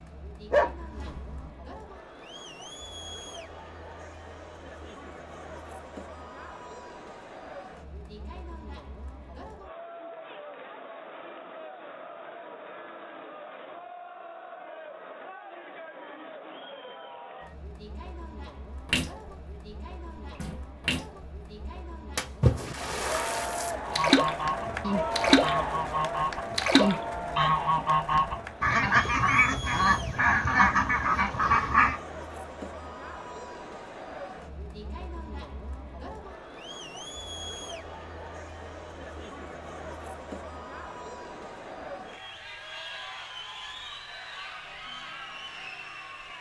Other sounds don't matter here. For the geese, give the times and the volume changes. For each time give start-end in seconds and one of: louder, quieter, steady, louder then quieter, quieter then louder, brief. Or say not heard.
23.8-32.0 louder.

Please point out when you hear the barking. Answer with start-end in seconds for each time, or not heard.
0.5-1.5.